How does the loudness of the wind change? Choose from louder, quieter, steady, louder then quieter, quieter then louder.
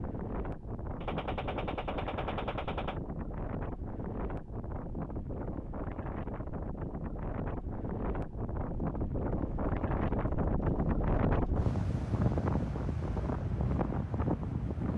louder.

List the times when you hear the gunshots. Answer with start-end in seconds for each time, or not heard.
1.0-3.0.